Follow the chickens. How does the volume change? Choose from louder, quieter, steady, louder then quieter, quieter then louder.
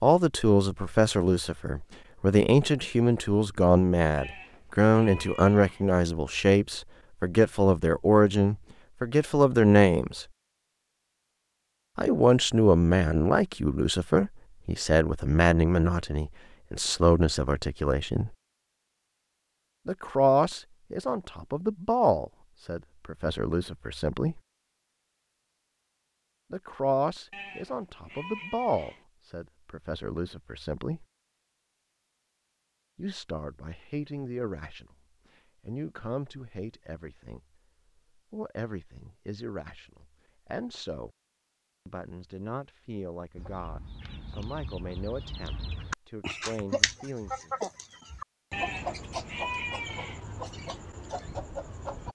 louder then quieter.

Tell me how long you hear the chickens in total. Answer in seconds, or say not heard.
9 s.